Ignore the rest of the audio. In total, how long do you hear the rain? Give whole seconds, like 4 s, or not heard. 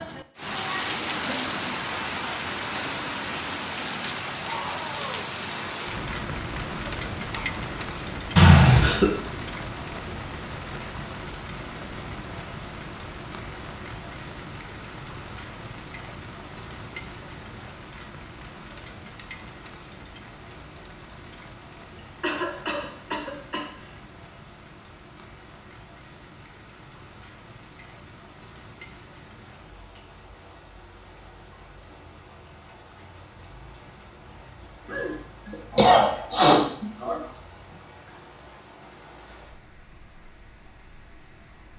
42 s.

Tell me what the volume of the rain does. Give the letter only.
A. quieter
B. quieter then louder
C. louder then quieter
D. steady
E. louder
A.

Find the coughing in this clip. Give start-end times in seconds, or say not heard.
8.3-9.1, 22.2-23.9, 34.9-37.2.